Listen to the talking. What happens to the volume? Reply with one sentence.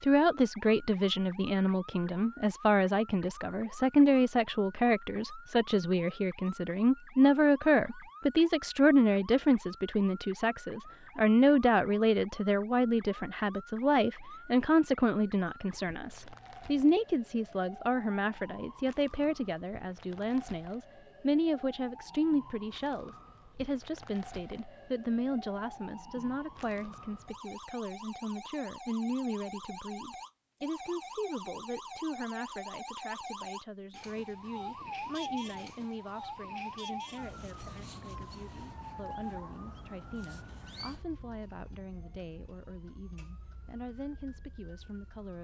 The volume of the talking goes down.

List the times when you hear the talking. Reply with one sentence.
The talking can be heard from 0.0 to 45.3 s.